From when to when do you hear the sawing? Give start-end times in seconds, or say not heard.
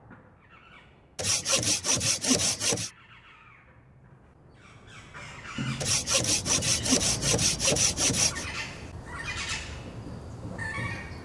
1.1-2.9, 5.8-8.4.